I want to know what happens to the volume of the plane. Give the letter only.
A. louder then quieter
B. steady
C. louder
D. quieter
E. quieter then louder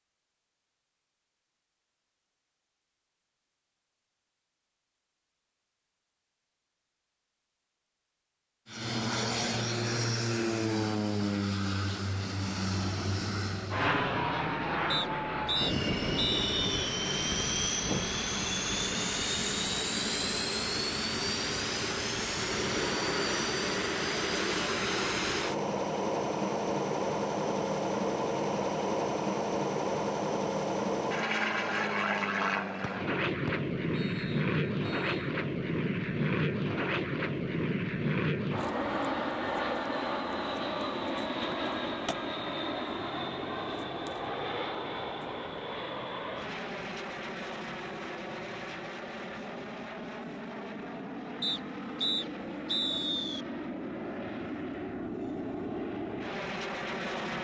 D.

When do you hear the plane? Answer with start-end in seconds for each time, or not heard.
8.7-57.3.